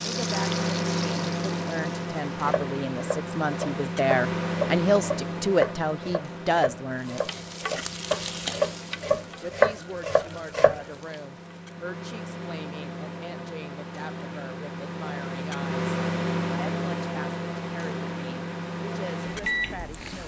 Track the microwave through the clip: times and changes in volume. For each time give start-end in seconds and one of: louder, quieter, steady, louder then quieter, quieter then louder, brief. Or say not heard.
0.0-20.2 quieter then louder.